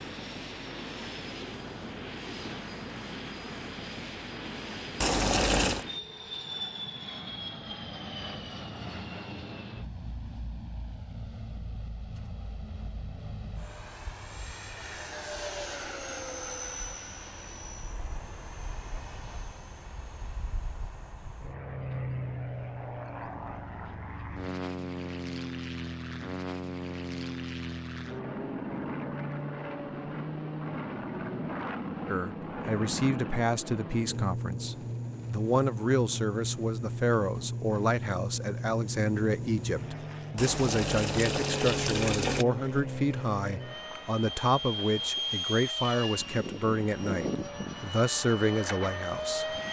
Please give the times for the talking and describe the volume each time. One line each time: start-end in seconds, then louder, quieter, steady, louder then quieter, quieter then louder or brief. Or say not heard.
32.0-49.5 steady.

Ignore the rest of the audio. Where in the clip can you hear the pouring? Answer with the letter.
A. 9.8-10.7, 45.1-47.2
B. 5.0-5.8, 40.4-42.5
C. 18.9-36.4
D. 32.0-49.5
B.